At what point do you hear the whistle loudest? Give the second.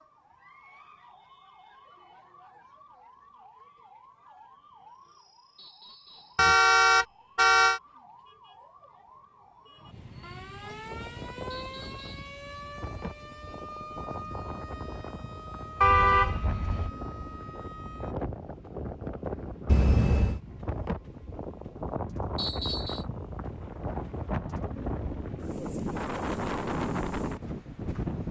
23 s.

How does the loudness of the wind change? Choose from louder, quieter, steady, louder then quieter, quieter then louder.
louder.